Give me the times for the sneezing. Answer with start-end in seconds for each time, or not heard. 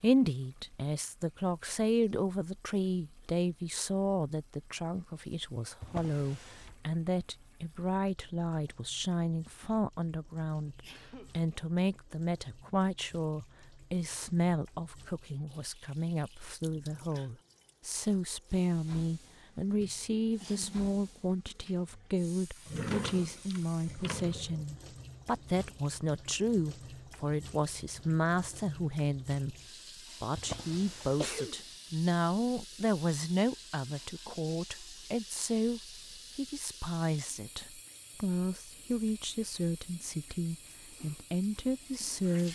10.7-11.3, 19.8-20.9, 30.4-31.6.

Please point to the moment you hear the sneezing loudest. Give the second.
31 s.